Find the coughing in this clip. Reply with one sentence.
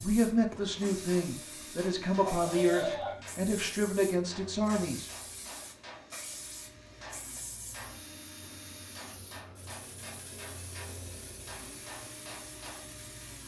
You can hear the coughing from 2.2 to 3.2 s.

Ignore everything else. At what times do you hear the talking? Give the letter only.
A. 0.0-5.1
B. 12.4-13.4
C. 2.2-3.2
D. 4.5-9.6
A.